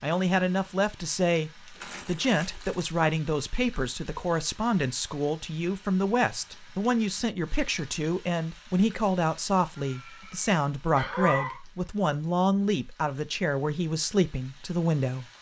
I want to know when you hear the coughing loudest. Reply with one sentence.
The volume of the coughing peaks at 11 seconds.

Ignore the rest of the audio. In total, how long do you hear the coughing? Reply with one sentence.
The coughing can be heard for 2 seconds in total.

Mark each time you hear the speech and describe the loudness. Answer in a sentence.
You can hear the speech from 0.0 to 15.2 s, at a steady volume.